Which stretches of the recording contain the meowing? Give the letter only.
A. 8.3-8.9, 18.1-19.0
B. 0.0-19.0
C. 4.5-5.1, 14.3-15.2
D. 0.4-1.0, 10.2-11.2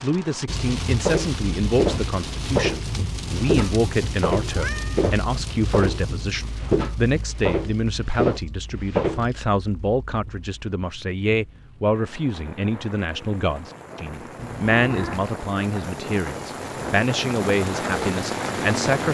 C.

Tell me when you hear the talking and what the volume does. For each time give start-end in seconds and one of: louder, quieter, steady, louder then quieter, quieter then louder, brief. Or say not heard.
0.0-19.0 steady.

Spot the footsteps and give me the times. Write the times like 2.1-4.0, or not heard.
1.0-9.3.